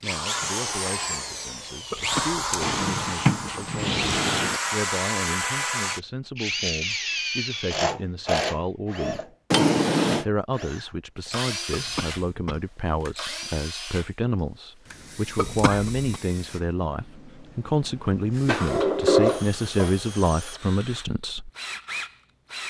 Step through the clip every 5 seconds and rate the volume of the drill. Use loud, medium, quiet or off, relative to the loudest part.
loud, loud, medium, quiet, medium.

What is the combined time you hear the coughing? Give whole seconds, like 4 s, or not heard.
3 s.